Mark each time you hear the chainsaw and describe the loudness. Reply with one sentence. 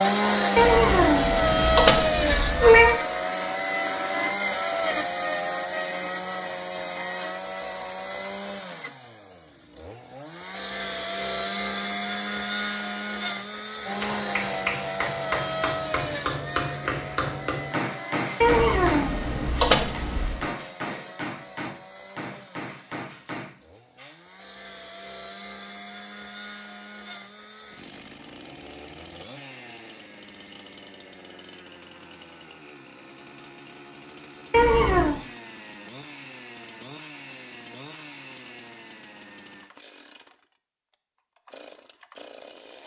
You can hear the chainsaw from 0.0 to 42.8 s, getting quieter.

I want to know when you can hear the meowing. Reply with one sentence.
The meowing can be heard from 0.6 to 3.0 s, from 18.4 to 20.4 s and from 34.5 to 35.2 s.